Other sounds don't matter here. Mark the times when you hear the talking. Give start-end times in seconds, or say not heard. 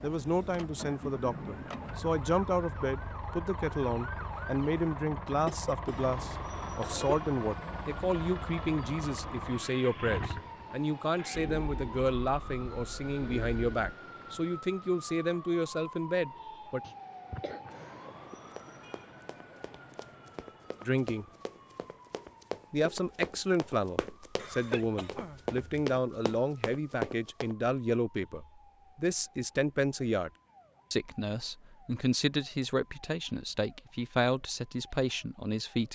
0.0-16.8, 20.8-21.2, 22.7-30.3, 30.9-35.9.